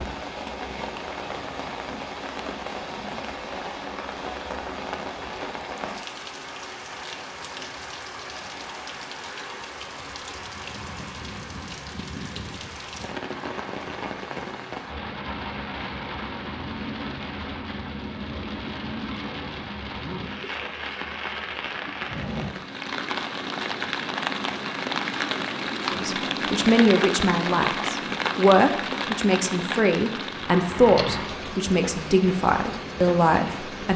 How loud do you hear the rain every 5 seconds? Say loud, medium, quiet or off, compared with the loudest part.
medium, medium, medium, medium, loud, loud, medium.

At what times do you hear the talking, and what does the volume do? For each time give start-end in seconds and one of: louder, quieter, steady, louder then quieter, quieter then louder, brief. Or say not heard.
25.9-33.9 steady.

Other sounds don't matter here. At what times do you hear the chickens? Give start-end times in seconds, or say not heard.
not heard.